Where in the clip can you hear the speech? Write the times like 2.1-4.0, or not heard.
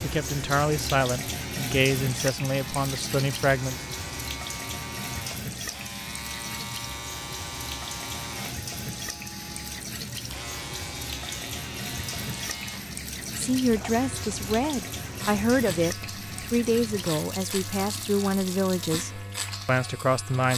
0.0-3.8, 13.3-20.5.